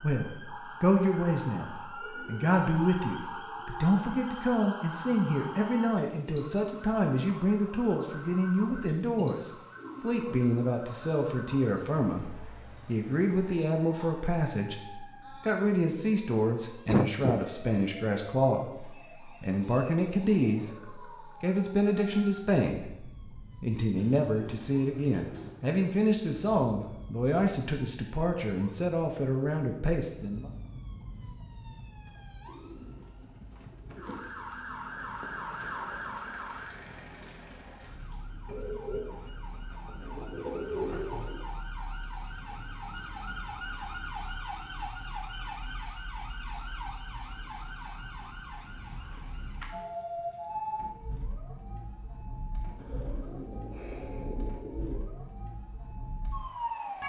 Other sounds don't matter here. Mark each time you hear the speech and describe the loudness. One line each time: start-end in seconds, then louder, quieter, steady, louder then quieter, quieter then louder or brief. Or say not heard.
0.0-20.7 steady
21.4-30.5 steady.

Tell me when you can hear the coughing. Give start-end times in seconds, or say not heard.
16.9-17.4.